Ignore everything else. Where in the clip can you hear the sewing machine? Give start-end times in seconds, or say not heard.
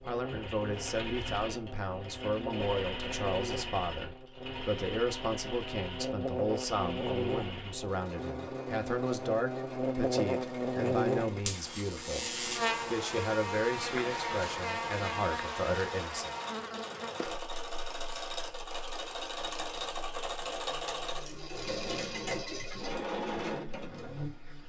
0.0-24.6.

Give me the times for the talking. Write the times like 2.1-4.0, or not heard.
0.0-16.4.